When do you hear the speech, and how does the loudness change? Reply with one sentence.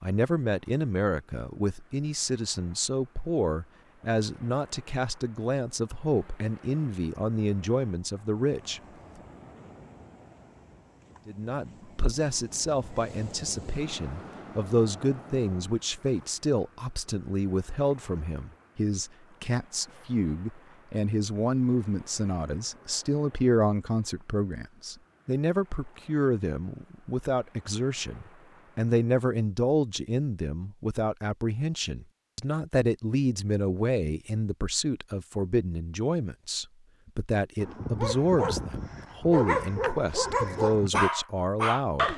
You can hear the speech from 0.0 to 8.8 s, at a steady volume; and from 11.2 to 42.1 s, at a steady volume.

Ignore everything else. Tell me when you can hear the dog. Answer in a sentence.
The dog can be heard from 37.6 to 42.1 s.